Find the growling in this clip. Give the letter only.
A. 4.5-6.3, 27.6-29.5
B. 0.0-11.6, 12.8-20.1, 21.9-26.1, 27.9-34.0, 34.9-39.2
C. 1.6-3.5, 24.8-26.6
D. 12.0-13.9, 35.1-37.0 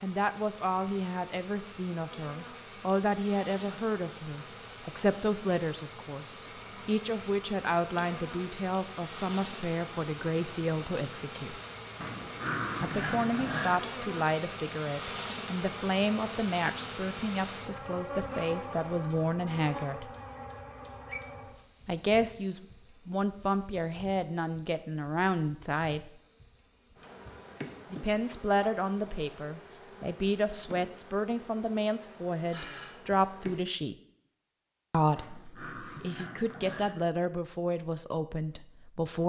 D.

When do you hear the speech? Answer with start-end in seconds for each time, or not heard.
0.0-11.6, 12.8-20.1, 21.9-26.1, 27.9-34.0, 34.9-39.2.